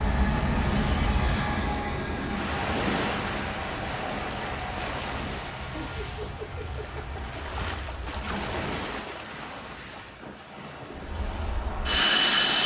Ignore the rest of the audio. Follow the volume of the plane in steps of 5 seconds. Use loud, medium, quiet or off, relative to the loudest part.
medium, quiet, loud.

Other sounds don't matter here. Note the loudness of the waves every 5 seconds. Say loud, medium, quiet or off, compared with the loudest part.
loud, loud, medium.